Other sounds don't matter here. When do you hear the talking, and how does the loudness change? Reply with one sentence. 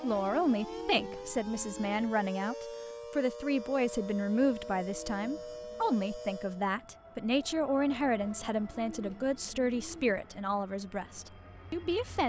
You can hear the talking from 0.0 to 12.2 s, at a steady volume.